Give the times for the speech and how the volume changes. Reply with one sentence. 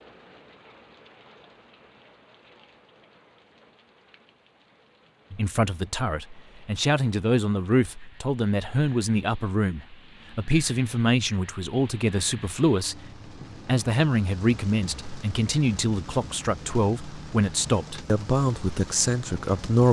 The speech can be heard from 5.3 to 19.8 s, at a steady volume.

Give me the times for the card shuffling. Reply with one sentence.
You can't hear the card shuffling here.